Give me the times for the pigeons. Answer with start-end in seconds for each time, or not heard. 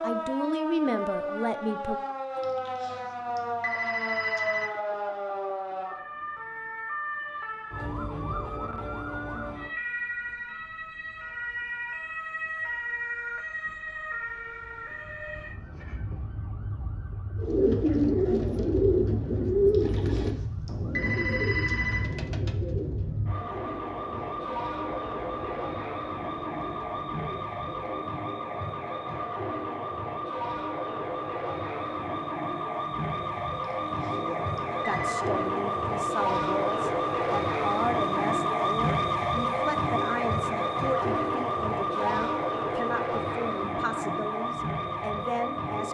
17.4-28.2.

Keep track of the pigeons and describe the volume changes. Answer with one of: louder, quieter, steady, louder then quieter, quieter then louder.
quieter.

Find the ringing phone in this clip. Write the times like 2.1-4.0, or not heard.
2.4-4.7, 19.7-22.3, 33.6-35.1.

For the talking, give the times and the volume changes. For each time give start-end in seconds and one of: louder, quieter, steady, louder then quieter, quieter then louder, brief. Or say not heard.
0.0-2.0 brief
34.1-45.8 steady.